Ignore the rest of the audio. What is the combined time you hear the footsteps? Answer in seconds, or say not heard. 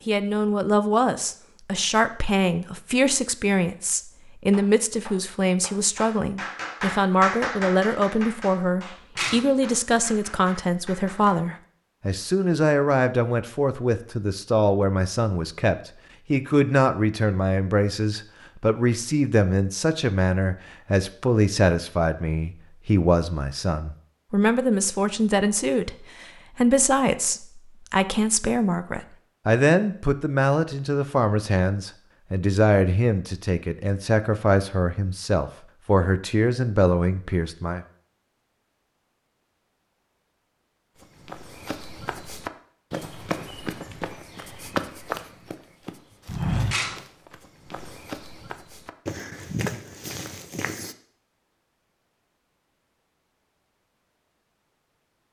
10 s.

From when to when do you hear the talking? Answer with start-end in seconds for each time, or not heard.
0.1-37.9.